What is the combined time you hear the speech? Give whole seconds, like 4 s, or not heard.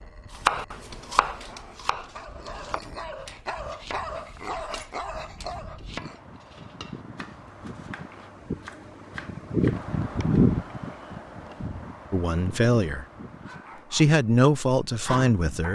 3 s.